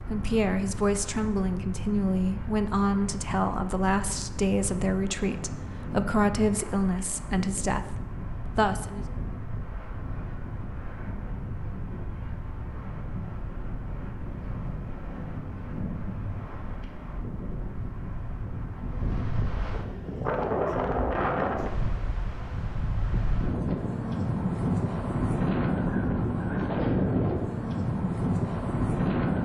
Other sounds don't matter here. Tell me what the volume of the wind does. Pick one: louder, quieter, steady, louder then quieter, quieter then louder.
louder.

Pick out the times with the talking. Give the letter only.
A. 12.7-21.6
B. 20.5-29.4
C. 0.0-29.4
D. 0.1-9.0
D.